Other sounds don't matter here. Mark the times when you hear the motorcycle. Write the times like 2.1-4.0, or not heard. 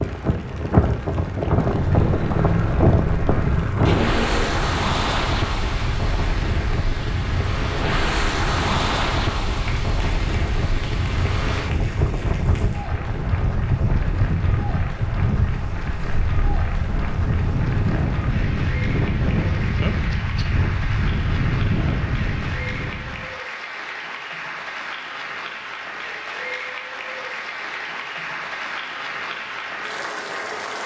1.6-4.7.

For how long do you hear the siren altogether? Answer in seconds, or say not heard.
not heard.